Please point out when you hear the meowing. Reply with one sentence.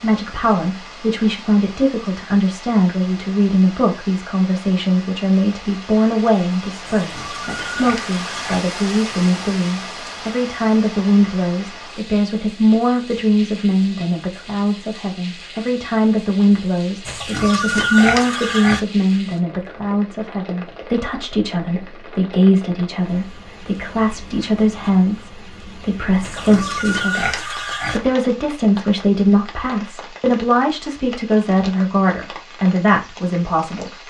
The meowing can't be heard in this clip.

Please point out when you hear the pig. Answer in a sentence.
The pig can be heard from 6.8 to 8.7 s, from 17.1 to 18.8 s and from 26.2 to 28.0 s.